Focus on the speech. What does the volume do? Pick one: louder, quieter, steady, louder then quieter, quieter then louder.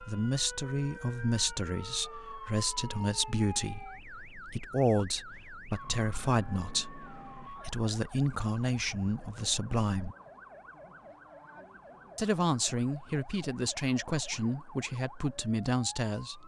steady.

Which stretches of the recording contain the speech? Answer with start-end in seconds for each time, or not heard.
0.0-10.2, 12.2-16.4.